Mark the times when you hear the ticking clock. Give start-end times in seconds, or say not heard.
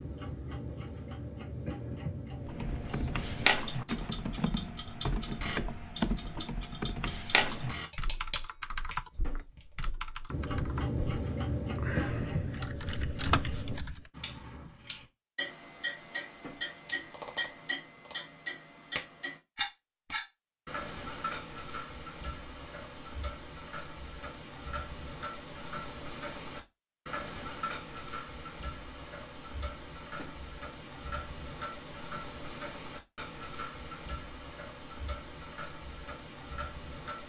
0.0-37.2.